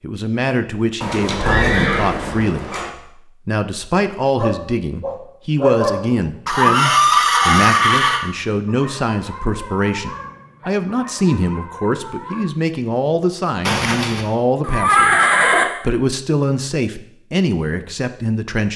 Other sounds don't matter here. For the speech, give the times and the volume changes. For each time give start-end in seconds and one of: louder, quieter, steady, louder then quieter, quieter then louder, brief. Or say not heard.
0.0-18.7 steady.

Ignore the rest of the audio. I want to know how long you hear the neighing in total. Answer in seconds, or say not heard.
6 s.